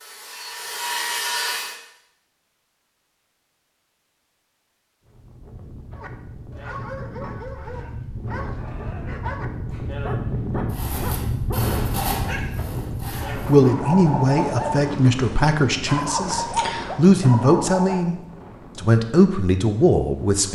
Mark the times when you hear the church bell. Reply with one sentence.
The church bell can't be heard in this clip.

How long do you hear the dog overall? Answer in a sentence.
The dog can be heard for 12 seconds in total.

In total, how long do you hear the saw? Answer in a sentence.
The saw can be heard for 5 seconds in total.